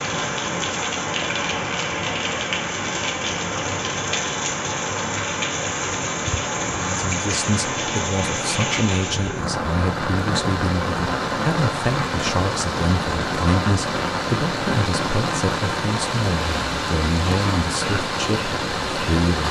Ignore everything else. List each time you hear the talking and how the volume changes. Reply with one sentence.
The talking can be heard from 6.9 to 19.4 s, at a steady volume.